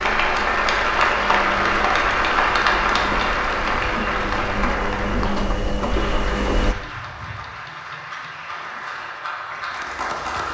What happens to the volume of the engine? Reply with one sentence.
The volume of the engine goes up.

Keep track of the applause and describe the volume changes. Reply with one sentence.
The volume of the applause goes down.